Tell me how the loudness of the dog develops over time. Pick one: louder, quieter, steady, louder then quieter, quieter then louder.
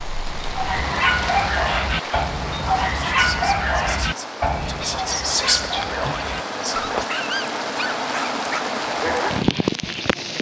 quieter.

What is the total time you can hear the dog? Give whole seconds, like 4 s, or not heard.
9 s.